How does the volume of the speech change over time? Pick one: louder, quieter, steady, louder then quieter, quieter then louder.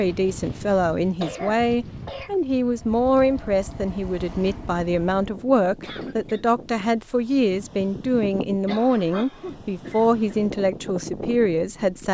steady.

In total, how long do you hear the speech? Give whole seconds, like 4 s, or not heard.
12 s.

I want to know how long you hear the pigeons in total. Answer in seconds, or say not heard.
not heard.